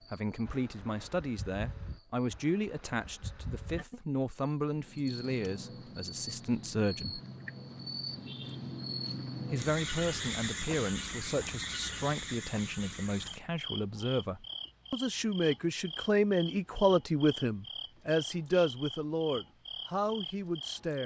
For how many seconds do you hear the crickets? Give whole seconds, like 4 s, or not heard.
21 s.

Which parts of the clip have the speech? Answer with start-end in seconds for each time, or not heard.
0.1-7.2, 9.5-21.0.